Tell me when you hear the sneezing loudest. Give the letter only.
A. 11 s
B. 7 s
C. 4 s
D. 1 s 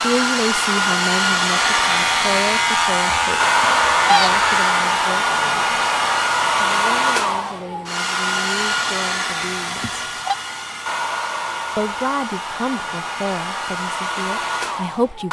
C.